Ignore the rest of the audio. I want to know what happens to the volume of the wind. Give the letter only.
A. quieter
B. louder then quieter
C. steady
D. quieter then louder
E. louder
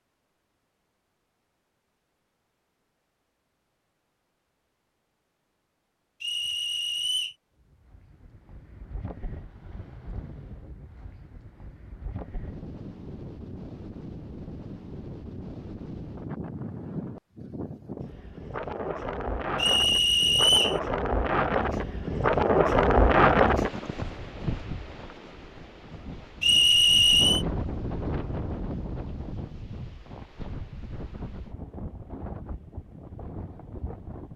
B.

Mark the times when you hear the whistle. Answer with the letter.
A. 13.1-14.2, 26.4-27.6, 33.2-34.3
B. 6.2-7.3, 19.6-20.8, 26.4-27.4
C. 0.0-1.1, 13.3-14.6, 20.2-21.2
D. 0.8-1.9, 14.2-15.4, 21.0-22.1
B.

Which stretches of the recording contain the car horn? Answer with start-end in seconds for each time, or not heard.
not heard.